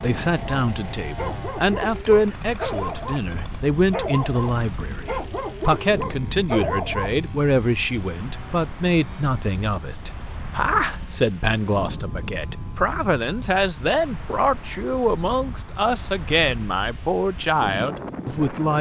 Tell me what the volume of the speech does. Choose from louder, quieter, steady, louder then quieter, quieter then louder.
steady.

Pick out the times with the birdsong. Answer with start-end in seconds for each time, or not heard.
not heard.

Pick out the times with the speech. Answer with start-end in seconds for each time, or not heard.
0.0-18.7.